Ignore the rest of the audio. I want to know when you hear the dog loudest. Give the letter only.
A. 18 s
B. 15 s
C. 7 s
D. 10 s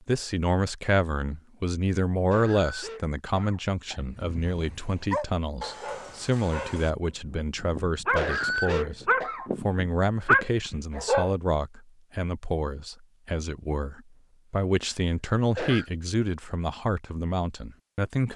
D.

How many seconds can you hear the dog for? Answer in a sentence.
The dog can be heard for 7 seconds in total.